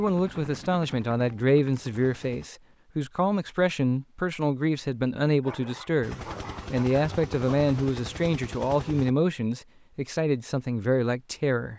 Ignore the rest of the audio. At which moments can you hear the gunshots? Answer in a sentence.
You can't hear the gunshots here.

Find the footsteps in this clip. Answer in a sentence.
The footsteps can't be heard in this clip.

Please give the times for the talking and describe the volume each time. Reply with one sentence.
You can hear the talking from 0.0 to 11.7 s, at a steady volume.